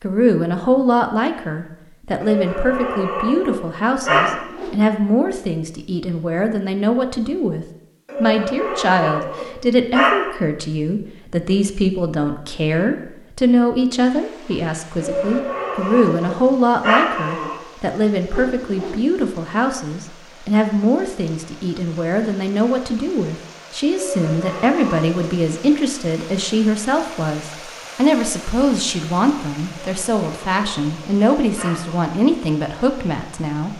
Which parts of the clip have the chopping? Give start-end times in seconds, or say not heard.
not heard.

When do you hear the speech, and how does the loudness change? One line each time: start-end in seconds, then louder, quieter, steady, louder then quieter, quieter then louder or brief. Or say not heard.
0.0-33.7 steady.